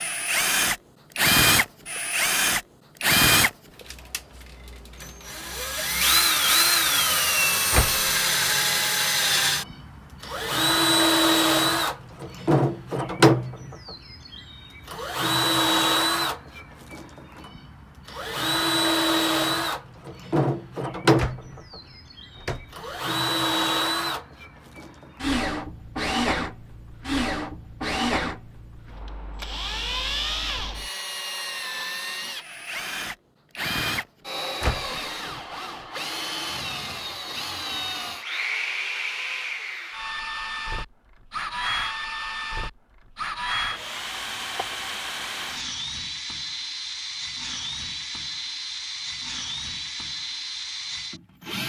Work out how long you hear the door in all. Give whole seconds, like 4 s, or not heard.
3 s.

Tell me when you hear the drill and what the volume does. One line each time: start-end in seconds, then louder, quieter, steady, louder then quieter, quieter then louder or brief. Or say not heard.
0.0-51.6 quieter.